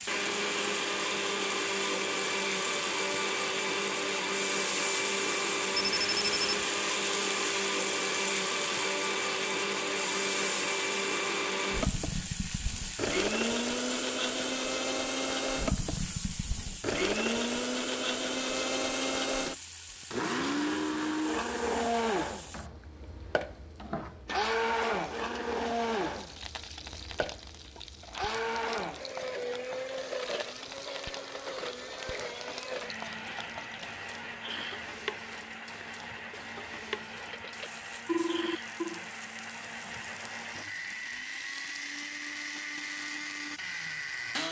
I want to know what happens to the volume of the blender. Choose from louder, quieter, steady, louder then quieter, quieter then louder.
quieter.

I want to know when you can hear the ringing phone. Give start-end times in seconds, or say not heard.
5.8-6.7, 37.3-39.0.